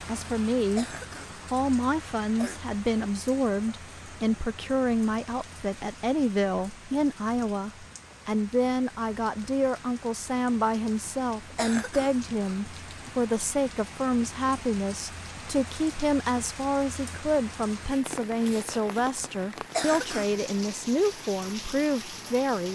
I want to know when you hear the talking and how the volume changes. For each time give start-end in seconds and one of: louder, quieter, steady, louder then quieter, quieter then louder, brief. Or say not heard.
0.1-22.7 steady.